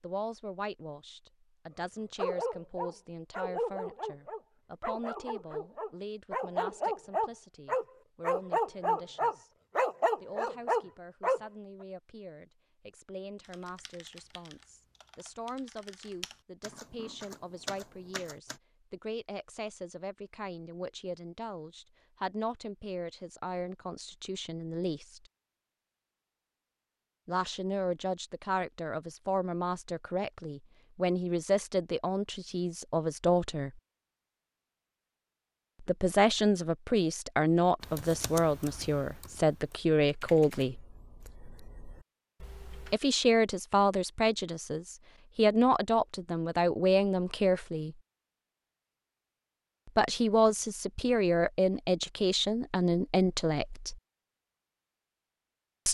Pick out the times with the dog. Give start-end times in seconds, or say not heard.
1.8-11.4.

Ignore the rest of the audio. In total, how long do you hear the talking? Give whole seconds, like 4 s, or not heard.
45 s.